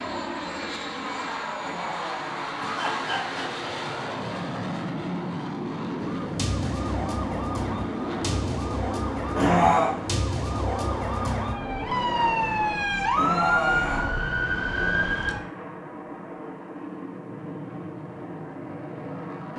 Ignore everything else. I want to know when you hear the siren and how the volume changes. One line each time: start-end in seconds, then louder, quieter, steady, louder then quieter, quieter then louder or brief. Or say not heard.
6.0-15.4 louder.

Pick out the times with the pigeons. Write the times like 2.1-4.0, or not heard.
not heard.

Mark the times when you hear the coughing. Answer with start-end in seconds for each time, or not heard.
1.6-3.6, 9.3-9.9, 13.2-14.1.